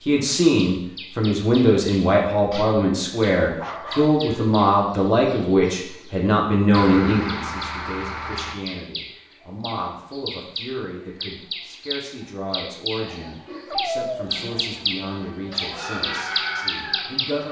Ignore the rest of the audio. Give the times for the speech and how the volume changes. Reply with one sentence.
The speech can be heard from 0.0 to 17.4 s, getting quieter.